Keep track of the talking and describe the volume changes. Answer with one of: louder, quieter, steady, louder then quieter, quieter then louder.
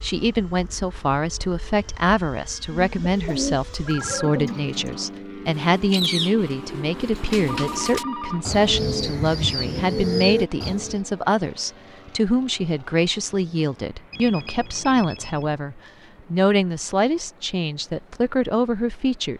steady.